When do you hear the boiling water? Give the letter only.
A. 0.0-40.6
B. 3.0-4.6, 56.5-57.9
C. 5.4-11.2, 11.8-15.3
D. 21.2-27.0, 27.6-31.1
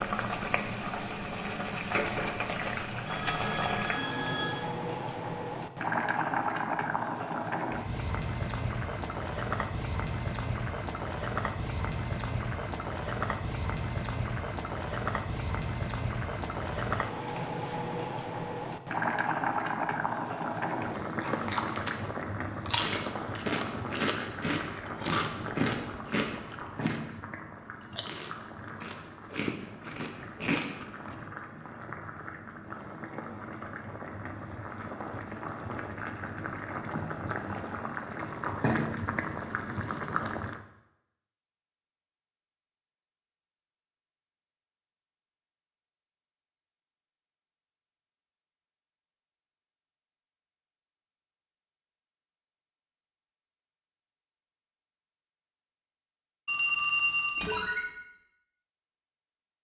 A.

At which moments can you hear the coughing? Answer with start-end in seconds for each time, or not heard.
not heard.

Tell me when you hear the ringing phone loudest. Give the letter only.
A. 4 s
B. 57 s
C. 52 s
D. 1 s
B.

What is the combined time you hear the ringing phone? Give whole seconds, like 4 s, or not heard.
3 s.